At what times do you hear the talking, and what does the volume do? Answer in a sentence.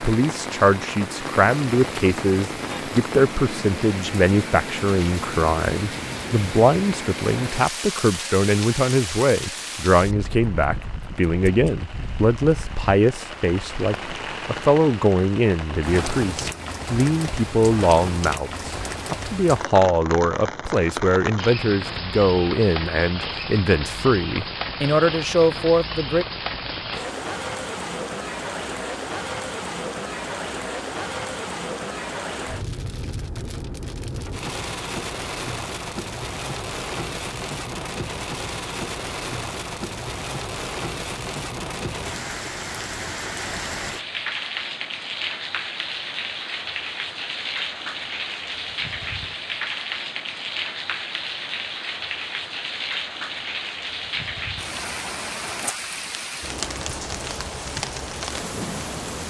The talking can be heard from 0.0 to 26.2 s, at a steady volume.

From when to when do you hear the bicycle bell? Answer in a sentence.
The bicycle bell can't be heard in this clip.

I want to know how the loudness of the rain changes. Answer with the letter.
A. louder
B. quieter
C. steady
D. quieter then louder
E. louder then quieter
C.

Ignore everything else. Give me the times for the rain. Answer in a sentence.
You can hear the rain from 0.0 to 59.2 s.